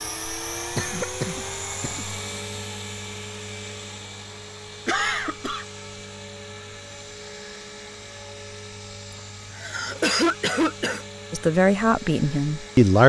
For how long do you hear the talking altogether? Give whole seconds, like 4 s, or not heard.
2 s.